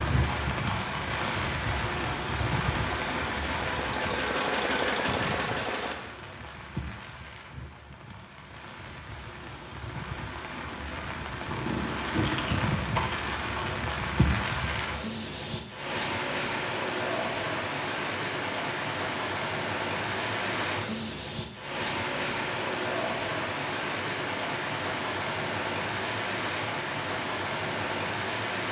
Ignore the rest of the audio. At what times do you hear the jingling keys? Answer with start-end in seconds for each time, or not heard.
11.5-13.8.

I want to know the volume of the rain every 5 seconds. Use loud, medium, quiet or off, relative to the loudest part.
loud, medium, loud, loud, loud, loud.